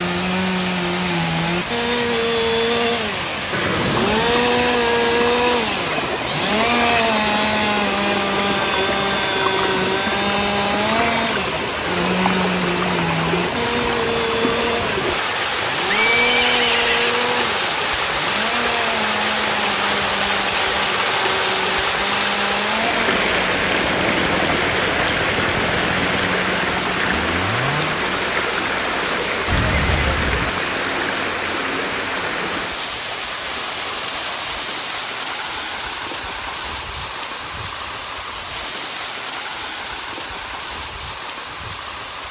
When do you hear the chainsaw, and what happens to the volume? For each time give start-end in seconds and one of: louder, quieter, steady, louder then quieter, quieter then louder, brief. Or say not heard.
0.0-28.1 quieter.